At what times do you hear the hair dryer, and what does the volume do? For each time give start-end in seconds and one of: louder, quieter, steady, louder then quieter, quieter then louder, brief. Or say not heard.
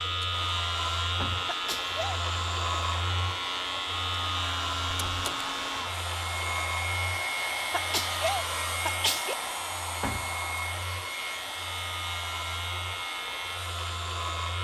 0.2-14.5 louder then quieter.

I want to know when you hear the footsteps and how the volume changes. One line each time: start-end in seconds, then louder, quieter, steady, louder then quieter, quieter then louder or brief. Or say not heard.
not heard.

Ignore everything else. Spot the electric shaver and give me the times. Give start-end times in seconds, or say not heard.
0.0-14.5.